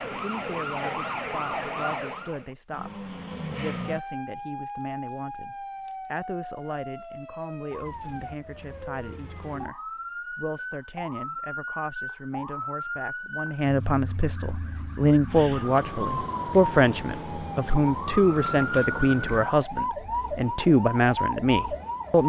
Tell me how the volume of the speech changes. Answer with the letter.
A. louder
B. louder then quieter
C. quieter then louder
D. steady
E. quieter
A.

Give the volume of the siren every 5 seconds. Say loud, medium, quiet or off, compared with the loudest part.
loud, medium, medium, loud, loud.